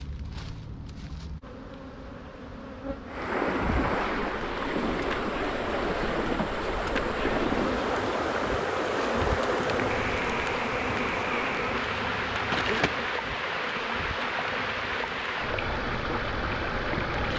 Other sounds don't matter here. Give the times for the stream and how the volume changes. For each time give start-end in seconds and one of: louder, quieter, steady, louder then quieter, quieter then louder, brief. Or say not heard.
3.0-17.3 steady.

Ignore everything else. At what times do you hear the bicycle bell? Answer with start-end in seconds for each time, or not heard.
not heard.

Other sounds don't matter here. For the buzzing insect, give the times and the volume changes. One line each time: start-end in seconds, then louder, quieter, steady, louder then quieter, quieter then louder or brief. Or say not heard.
0.0-17.3 louder then quieter.